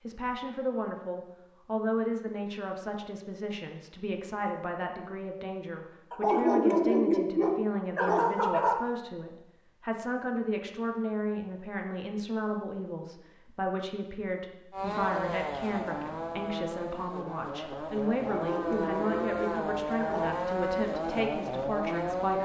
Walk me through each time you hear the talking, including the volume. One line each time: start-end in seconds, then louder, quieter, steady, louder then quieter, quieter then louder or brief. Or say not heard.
0.0-22.4 steady.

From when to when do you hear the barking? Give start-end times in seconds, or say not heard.
6.1-8.8, 18.1-20.4.